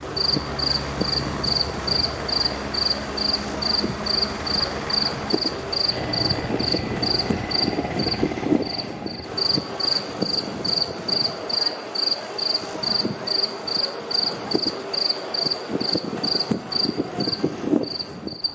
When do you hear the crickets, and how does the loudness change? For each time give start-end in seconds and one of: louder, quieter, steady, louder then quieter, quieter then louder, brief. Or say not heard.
0.0-18.5 steady.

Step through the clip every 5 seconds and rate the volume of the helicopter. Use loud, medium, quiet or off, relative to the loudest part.
loud, loud, off, off.